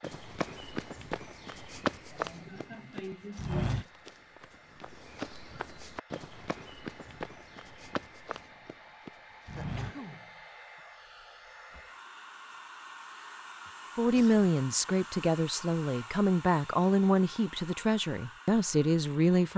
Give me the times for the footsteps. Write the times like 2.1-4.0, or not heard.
0.0-10.1.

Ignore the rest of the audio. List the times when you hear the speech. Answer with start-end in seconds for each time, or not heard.
13.9-19.5.